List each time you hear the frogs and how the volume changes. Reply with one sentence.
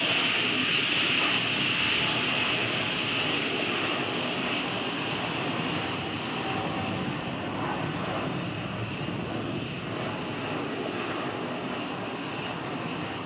The frogs can be heard from 0.0 to 13.2 s, getting quieter.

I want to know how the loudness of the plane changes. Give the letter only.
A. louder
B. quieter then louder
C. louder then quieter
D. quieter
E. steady
E.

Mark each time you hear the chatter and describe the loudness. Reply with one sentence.
You can't hear the chatter here.